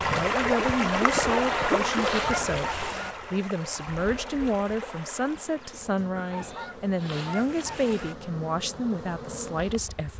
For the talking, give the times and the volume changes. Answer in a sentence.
The talking can be heard from 0.0 to 10.1 s, at a steady volume.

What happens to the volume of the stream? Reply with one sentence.
The volume of the stream goes down.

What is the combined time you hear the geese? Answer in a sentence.
The geese can be heard for 4 seconds in total.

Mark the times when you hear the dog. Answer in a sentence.
The dog can't be heard in this clip.